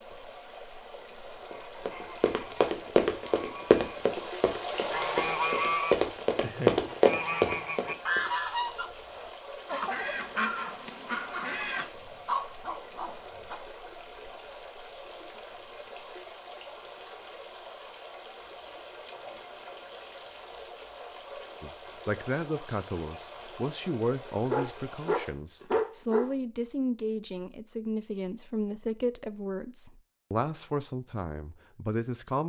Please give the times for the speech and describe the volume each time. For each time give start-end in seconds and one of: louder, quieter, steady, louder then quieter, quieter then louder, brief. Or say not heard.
21.6-32.4 steady.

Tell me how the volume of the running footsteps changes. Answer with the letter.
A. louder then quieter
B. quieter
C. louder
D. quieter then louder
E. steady
D.